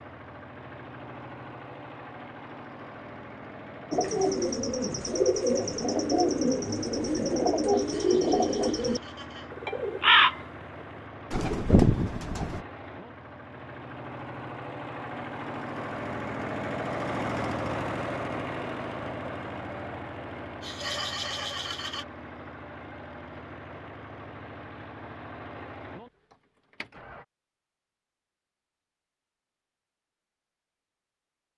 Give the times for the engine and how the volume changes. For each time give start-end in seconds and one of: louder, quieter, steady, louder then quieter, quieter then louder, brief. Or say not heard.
0.0-27.2 louder then quieter.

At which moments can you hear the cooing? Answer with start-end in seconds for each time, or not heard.
3.9-10.4, 11.3-12.7.